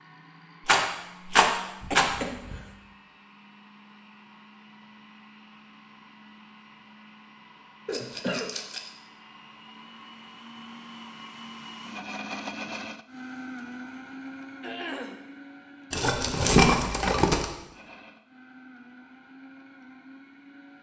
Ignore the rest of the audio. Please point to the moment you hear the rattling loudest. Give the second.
17 s.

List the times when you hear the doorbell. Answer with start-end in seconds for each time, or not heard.
not heard.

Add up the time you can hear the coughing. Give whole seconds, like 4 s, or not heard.
2 s.